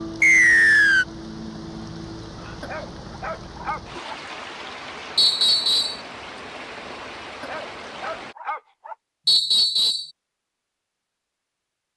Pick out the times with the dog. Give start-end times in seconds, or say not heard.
2.6-4.2, 7.4-8.9.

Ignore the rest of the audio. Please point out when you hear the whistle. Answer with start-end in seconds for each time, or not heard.
0.2-1.1, 5.2-6.0, 9.2-10.1.